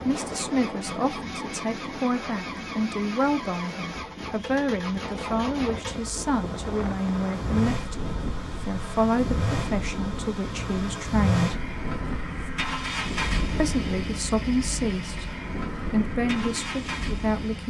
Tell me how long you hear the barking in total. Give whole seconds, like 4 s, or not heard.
not heard.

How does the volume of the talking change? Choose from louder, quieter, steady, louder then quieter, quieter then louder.
steady.